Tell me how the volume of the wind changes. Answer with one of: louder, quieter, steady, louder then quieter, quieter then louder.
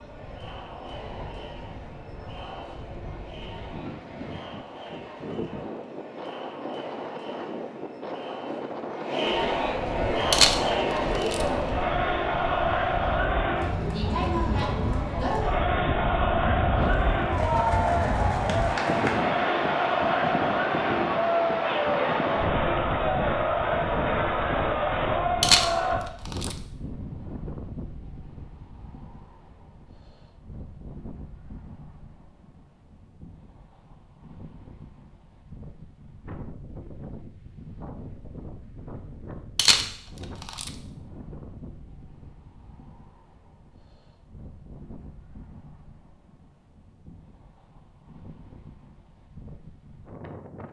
louder then quieter.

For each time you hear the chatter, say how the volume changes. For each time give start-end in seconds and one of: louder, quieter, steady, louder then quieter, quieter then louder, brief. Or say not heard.
0.0-26.0 louder.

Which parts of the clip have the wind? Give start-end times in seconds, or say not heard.
0.0-50.6.